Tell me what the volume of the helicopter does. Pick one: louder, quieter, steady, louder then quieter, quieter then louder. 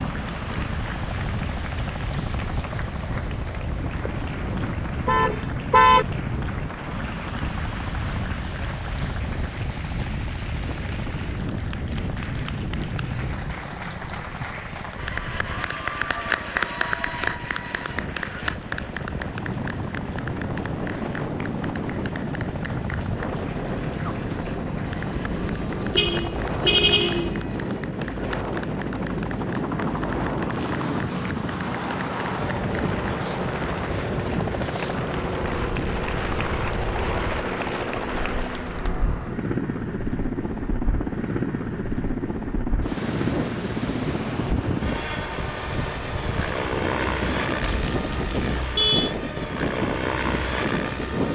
louder.